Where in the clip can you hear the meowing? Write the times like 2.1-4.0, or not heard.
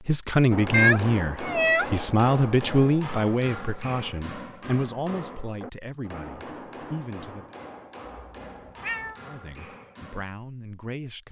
0.7-1.9, 8.1-9.2.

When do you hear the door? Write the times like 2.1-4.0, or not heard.
not heard.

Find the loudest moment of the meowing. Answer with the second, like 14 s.
1 s.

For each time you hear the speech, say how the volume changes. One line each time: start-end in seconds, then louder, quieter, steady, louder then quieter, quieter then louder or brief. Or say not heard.
0.1-7.5 quieter
9.2-11.2 brief.